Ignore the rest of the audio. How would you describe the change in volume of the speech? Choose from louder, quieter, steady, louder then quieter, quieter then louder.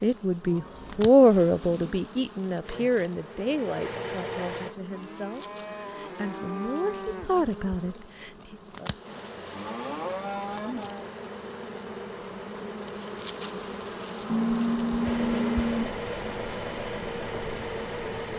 quieter then louder.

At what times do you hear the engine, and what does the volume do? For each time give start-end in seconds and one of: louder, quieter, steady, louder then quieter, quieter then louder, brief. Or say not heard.
2.6-4.8 brief
9.0-18.3 louder.